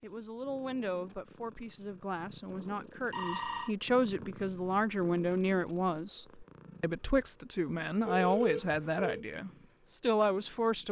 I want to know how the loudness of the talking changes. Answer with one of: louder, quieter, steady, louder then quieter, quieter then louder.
louder.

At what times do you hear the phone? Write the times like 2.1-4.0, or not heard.
3.1-3.8, 8.1-9.2.